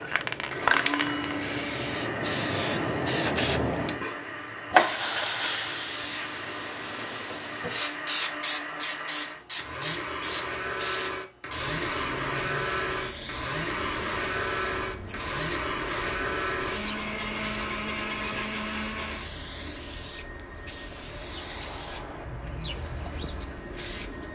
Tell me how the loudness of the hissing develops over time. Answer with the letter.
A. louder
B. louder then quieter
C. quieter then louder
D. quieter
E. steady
D.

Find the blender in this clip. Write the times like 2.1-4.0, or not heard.
0.1-19.3.